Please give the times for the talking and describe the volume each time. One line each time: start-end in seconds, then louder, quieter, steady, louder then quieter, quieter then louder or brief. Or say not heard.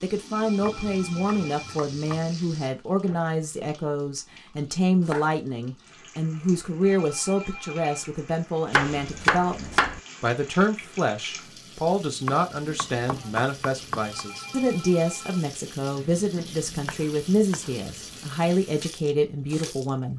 0.0-20.1 steady.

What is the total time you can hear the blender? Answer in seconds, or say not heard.
not heard.